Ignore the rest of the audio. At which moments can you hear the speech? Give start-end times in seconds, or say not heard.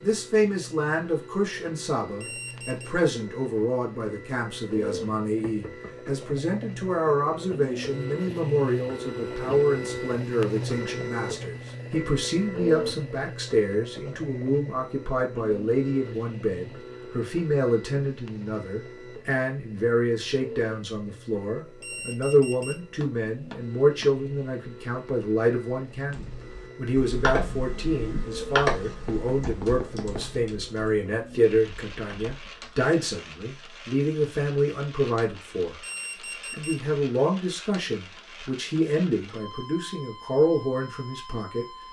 0.0-35.8, 36.5-41.6.